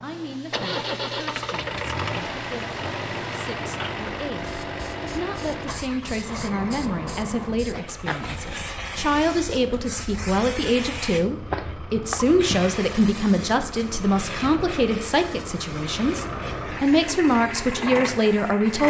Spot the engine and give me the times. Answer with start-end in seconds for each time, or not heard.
0.0-18.8.